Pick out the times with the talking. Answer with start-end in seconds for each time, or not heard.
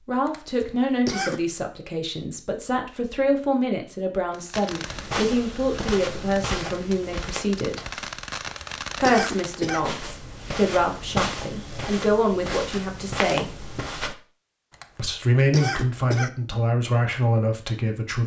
0.1-7.8, 8.9-13.6, 14.9-18.2.